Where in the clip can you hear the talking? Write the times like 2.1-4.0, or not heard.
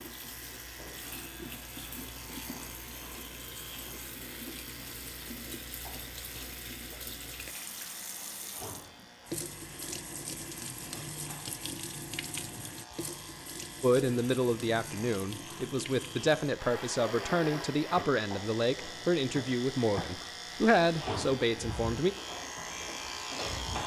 13.8-22.1.